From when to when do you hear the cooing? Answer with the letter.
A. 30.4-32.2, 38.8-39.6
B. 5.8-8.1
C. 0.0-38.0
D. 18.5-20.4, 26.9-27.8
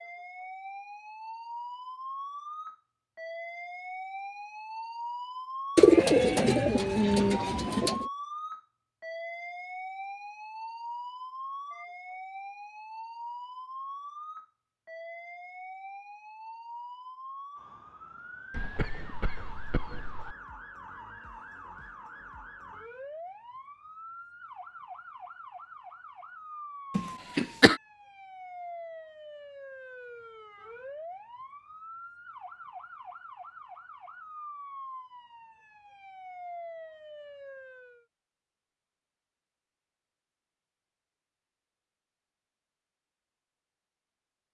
B.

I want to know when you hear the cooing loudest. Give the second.
6 s.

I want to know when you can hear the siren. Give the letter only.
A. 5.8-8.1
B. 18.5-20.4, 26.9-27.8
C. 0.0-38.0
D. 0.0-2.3
C.